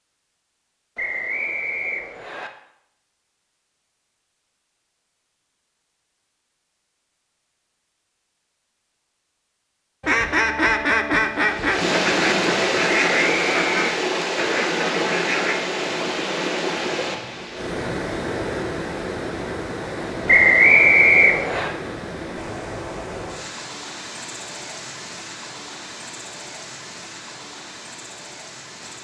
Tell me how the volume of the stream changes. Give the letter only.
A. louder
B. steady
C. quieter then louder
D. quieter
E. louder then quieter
D.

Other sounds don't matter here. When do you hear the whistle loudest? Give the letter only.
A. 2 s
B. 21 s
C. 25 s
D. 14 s
B.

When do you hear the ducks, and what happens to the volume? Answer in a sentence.
The ducks can be heard from 10.0 to 15.6 s, getting quieter.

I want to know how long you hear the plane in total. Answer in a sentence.
The plane can't be heard in this clip.